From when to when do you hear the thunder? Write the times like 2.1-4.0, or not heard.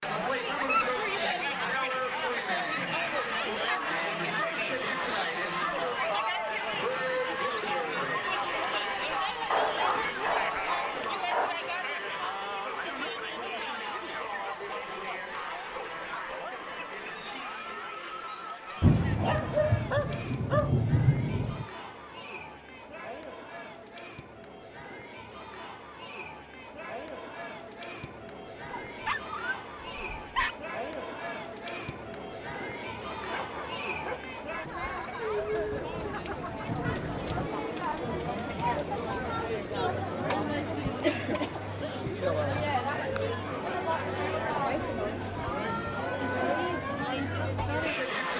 18.8-21.6, 35.5-37.5.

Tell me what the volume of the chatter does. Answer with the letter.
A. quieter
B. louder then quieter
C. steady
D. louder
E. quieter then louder
E.